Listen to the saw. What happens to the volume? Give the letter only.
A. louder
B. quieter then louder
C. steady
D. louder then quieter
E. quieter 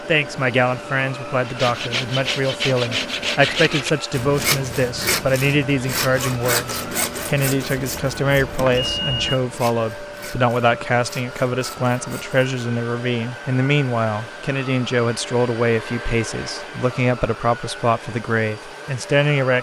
E.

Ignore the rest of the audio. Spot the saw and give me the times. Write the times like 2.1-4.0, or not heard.
1.4-12.4.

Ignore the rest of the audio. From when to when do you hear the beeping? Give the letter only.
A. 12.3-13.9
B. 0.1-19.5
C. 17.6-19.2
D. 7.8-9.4
D.